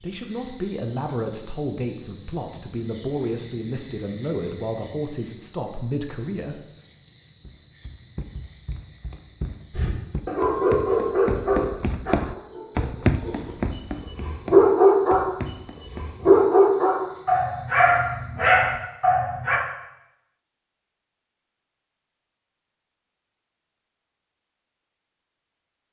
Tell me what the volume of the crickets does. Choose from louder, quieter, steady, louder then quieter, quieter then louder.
quieter.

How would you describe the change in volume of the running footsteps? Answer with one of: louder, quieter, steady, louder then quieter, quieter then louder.
louder then quieter.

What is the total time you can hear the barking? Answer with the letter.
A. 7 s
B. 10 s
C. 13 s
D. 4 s
B.